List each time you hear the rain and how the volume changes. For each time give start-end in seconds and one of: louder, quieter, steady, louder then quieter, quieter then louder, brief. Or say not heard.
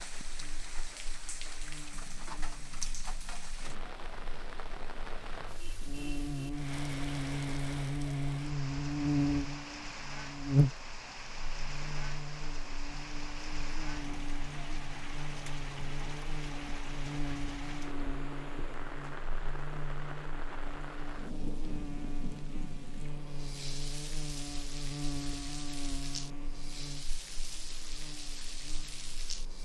0.0-29.6 steady.